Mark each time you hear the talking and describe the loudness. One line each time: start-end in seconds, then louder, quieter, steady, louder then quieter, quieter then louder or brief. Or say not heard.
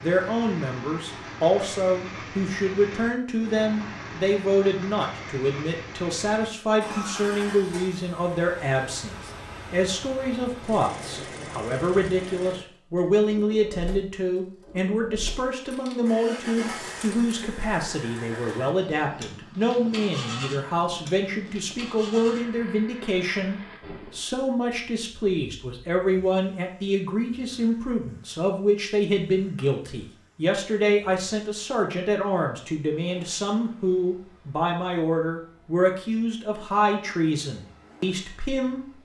0.0-39.0 steady.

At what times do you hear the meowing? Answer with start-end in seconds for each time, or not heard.
not heard.